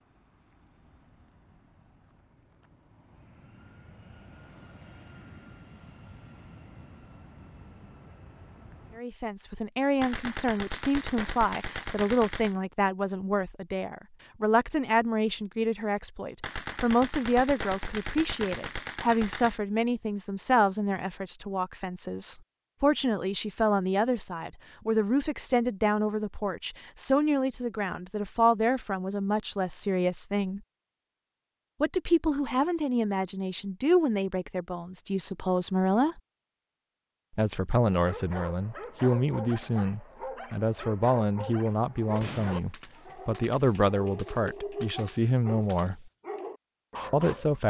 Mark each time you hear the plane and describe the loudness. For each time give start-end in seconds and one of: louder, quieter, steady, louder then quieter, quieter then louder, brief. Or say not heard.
0.0-9.1 louder.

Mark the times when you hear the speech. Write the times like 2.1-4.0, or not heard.
8.9-30.6, 31.8-36.2, 37.4-46.1, 47.1-47.6.